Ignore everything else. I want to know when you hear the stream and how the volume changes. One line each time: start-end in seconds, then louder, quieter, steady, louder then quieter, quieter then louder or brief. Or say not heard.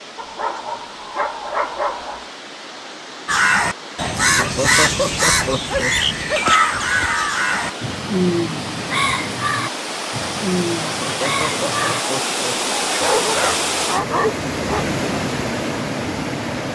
0.0-16.6 louder.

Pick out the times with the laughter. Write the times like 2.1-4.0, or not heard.
4.3-6.0, 11.0-12.6.